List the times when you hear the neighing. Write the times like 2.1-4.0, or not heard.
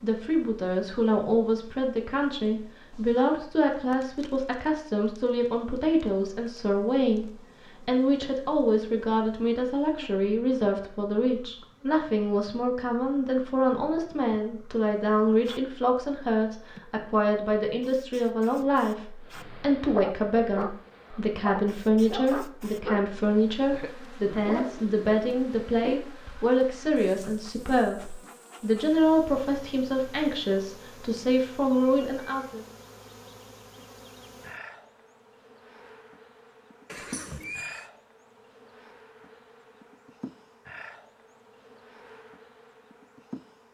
36.9-37.9.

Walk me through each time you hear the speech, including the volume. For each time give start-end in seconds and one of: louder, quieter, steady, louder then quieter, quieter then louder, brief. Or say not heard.
0.0-32.6 steady.